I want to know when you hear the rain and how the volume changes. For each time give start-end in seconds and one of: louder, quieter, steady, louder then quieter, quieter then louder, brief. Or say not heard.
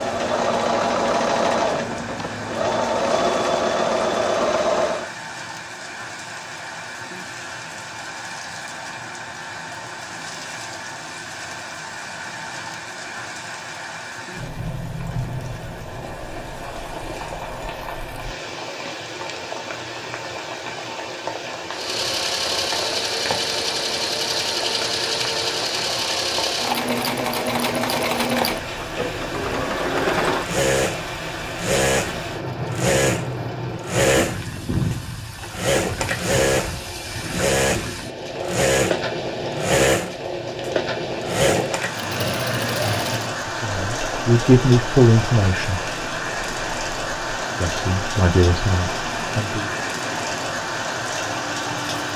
0.0-52.1 louder.